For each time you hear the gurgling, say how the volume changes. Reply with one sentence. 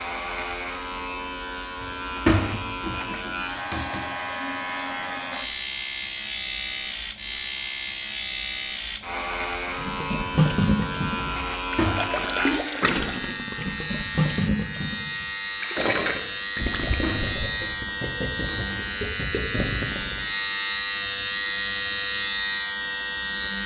You can hear the gurgling from 9.8 to 20.3 s, getting quieter.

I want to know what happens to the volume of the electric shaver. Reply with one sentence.
The loudness of the electric shaver goes up.